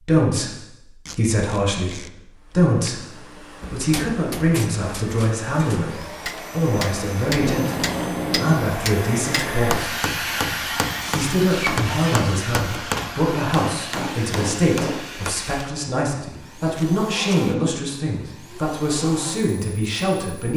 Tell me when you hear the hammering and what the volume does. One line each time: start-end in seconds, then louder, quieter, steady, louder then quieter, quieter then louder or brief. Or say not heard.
3.6-15.3 louder.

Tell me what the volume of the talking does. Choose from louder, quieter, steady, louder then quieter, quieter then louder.
steady.